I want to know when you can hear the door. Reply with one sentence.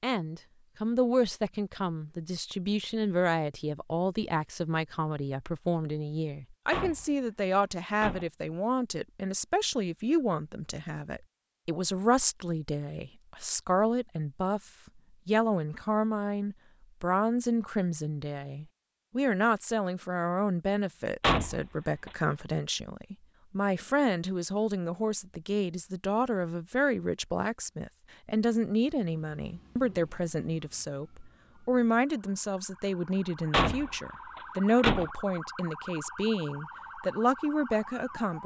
The door can be heard from 6.7 to 8.3 s, from 21.2 to 22.1 s and from 33.5 to 35.1 s.